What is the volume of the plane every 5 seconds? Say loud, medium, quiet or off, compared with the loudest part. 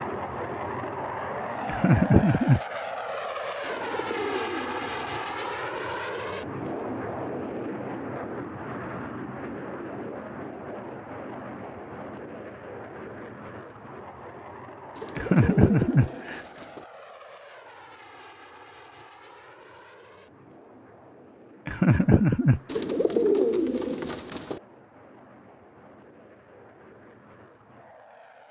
loud, loud, medium, quiet, quiet, quiet.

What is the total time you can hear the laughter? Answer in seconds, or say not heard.
3 s.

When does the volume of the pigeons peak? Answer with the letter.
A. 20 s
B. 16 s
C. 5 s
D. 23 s
D.